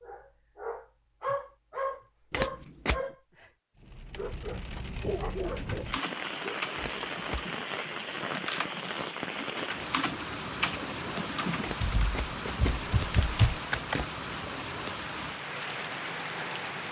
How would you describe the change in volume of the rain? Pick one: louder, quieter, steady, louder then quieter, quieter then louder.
steady.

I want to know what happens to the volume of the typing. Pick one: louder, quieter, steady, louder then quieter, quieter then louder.
louder.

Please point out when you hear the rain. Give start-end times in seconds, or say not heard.
3.8-16.8.